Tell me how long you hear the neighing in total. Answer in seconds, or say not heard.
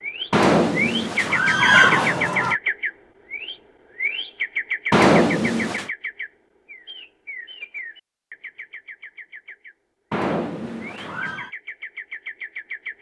5 s.